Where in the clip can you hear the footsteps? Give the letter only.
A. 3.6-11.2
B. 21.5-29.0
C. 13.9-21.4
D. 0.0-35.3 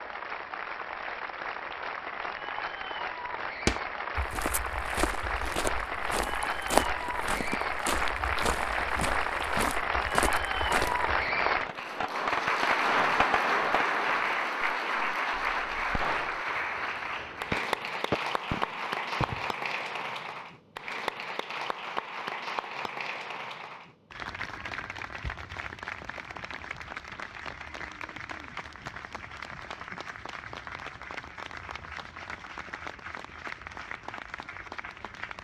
A.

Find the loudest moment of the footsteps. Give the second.
7 s.